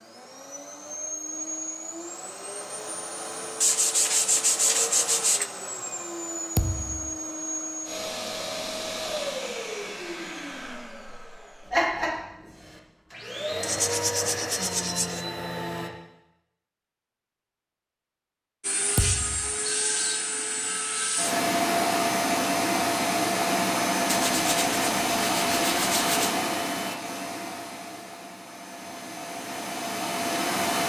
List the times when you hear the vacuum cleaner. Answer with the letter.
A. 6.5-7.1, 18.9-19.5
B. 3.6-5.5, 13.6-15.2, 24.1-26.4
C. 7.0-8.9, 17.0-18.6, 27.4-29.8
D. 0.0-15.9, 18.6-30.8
D.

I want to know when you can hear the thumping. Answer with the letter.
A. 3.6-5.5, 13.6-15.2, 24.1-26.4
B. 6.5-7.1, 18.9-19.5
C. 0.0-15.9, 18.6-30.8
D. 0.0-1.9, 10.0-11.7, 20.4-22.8
B.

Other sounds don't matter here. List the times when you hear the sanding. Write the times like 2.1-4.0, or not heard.
3.6-5.5, 13.6-15.2, 24.1-26.4.